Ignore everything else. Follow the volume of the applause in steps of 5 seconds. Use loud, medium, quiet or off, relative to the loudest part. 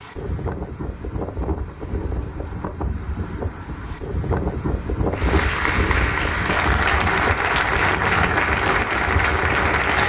off, loud.